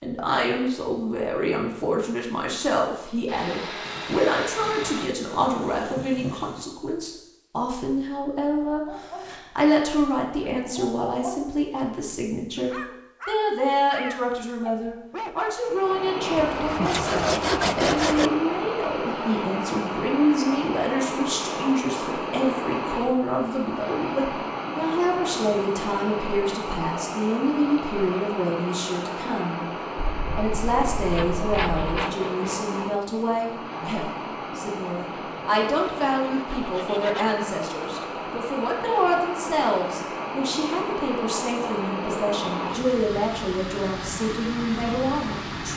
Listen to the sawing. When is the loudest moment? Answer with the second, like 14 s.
18 s.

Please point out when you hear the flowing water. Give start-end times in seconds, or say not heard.
15.6-45.7.